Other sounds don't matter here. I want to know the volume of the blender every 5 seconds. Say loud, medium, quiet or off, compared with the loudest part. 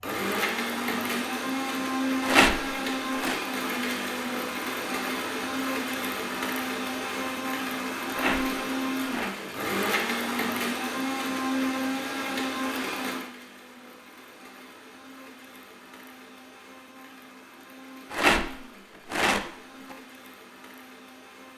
loud, loud, loud, quiet, quiet.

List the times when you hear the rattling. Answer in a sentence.
The rattling can be heard from 2.2 to 3.4 s, from 8.1 to 9.3 s and from 18.1 to 19.9 s.